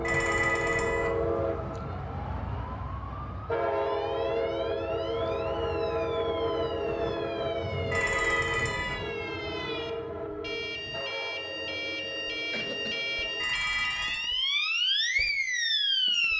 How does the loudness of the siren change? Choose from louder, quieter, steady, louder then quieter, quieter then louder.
louder.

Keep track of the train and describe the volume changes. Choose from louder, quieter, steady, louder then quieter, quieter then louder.
quieter.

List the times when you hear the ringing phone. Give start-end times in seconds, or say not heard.
0.0-1.1, 7.9-8.9, 13.4-14.2.